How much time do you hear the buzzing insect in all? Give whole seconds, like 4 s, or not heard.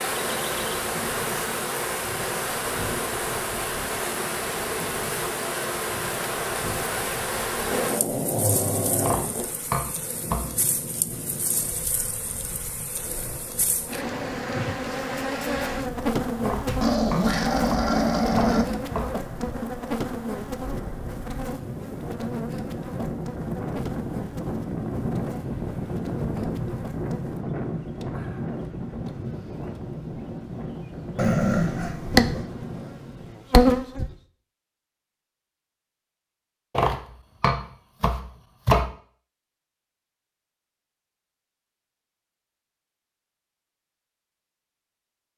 34 s.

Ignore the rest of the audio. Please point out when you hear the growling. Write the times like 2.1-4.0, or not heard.
7.7-9.4, 16.6-18.6, 31.1-32.5.